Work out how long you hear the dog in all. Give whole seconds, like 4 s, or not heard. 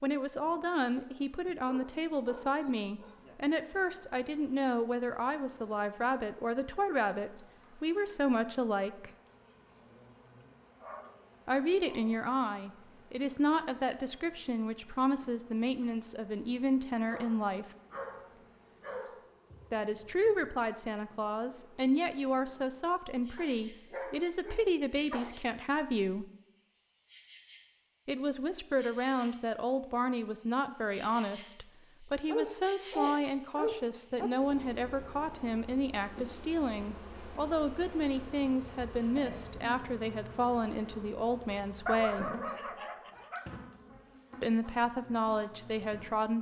11 s.